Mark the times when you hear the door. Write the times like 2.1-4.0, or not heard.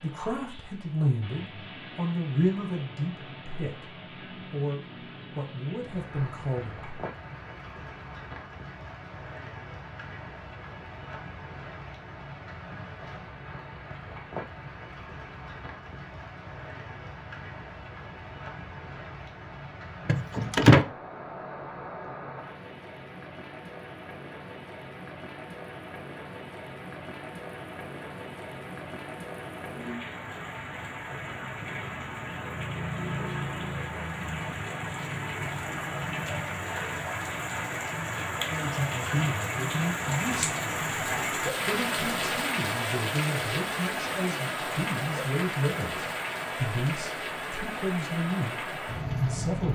20.1-20.9.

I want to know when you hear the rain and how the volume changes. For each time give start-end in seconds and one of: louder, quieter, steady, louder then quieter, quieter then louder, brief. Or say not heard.
0.0-49.7 louder.